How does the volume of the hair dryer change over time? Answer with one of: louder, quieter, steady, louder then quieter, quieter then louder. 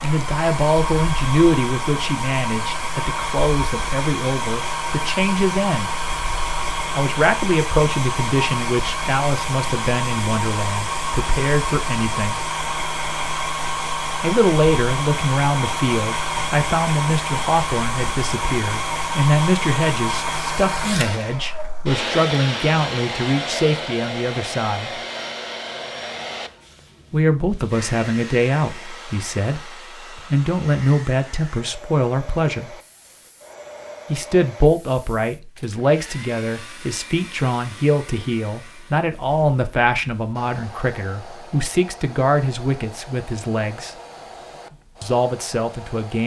quieter.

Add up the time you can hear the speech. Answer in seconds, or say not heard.
39 s.